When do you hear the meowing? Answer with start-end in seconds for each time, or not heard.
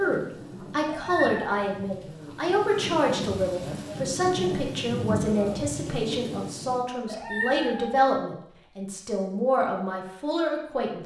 0.8-1.6, 7.0-8.0.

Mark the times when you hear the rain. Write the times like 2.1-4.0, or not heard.
0.0-6.8.